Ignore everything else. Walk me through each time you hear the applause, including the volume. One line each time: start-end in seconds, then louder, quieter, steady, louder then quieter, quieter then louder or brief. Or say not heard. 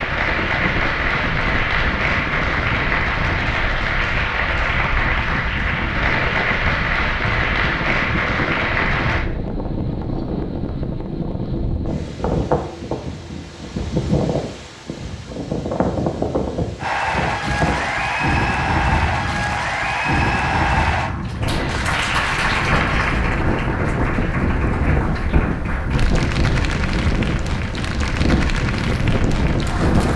0.0-9.2 steady
16.8-30.1 quieter.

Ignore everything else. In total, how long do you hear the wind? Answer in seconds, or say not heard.
30 s.